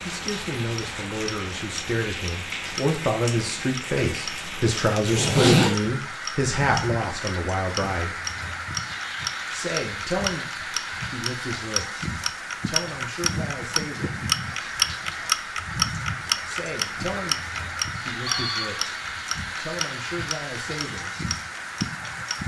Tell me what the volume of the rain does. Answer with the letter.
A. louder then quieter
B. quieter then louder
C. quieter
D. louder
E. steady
E.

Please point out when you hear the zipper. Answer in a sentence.
You can hear the zipper from 5.0 to 5.8 s.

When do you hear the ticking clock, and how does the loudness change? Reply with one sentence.
The ticking clock can be heard from 0.2 to 22.4 s, getting louder then quieter.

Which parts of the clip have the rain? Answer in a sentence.
The rain can be heard from 0.0 to 22.4 s.